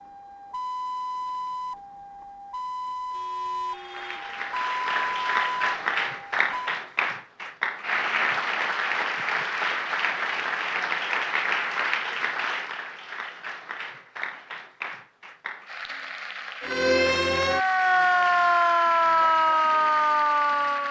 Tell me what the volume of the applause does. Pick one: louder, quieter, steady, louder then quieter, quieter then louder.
quieter.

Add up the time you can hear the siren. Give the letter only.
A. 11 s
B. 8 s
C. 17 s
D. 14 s
A.